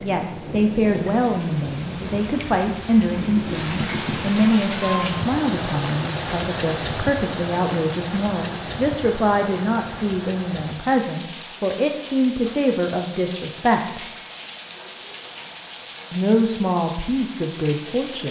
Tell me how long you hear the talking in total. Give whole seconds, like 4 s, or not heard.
16 s.